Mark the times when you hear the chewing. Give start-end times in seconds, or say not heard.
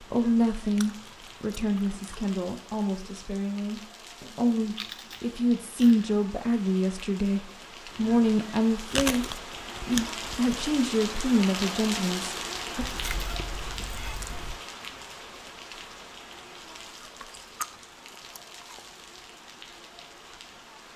0.8-2.4, 4.2-6.1, 8.8-10.7, 12.8-14.6, 16.8-18.9.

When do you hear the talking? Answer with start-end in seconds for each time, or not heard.
0.0-12.8.